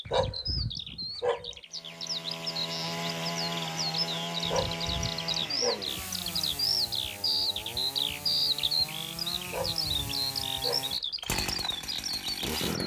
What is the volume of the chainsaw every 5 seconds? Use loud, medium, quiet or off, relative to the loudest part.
loud, medium, loud.